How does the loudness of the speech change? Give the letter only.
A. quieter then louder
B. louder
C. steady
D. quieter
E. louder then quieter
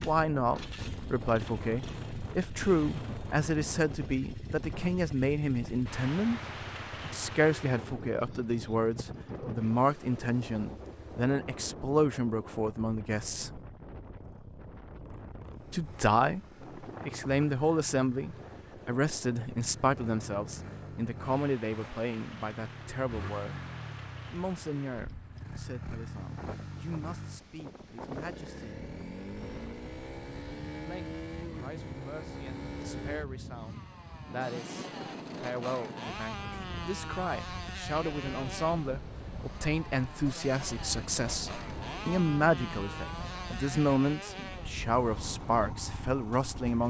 A.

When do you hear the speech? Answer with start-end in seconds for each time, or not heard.
0.0-6.4, 7.0-13.6, 15.7-23.6, 24.3-28.9, 30.7-46.8.